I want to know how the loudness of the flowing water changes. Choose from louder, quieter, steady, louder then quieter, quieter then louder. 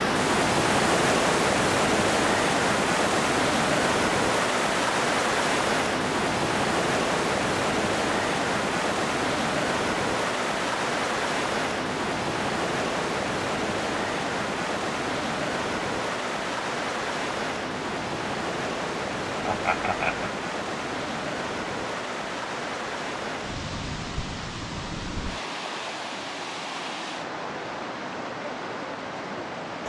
quieter.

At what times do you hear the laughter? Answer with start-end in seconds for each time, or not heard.
19.4-20.3.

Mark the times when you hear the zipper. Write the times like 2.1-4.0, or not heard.
not heard.